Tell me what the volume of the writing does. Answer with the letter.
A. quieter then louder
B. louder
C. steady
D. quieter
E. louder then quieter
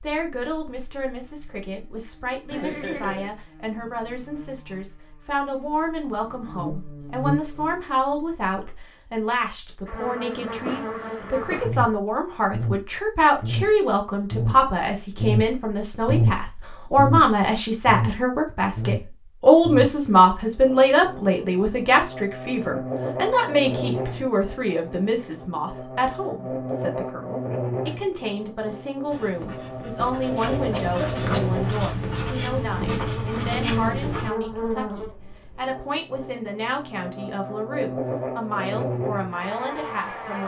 B.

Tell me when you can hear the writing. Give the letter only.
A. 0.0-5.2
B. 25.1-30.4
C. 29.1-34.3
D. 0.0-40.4
C.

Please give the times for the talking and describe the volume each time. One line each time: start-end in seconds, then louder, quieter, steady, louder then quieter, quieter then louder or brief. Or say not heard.
0.0-40.4 louder then quieter.